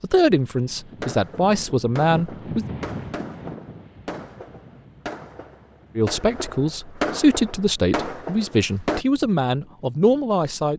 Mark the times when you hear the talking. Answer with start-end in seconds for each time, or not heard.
0.0-2.6, 6.0-10.7.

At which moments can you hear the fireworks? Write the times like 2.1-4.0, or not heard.
1.0-9.1.